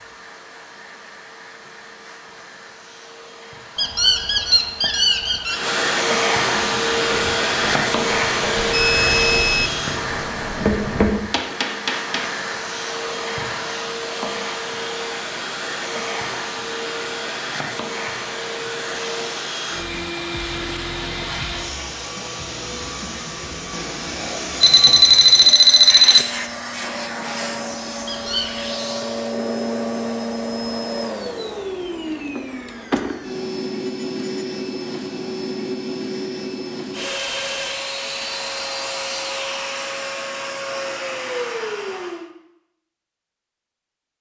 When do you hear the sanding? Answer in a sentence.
You can't hear the sanding here.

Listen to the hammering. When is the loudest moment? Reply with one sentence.
The loudest moment of the hammering is at 11 seconds.